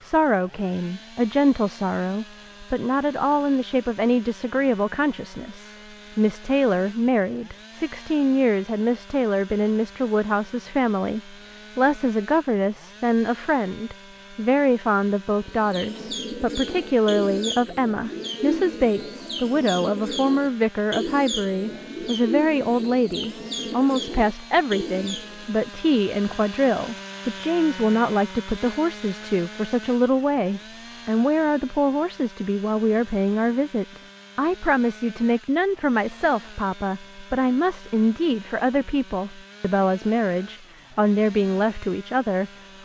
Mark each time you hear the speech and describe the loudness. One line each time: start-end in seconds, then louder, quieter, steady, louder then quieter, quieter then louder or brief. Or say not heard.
0.0-42.5 steady.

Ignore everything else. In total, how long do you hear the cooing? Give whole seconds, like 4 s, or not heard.
10 s.